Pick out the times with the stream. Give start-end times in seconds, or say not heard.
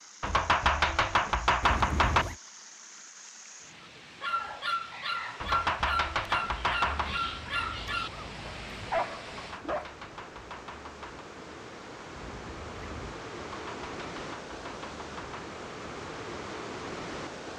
0.0-17.5.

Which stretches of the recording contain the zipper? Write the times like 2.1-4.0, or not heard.
1.6-2.4, 6.9-8.9, 12.2-13.1.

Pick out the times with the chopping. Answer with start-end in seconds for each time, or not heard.
0.2-2.2, 5.4-7.2, 9.3-11.2, 13.4-15.4.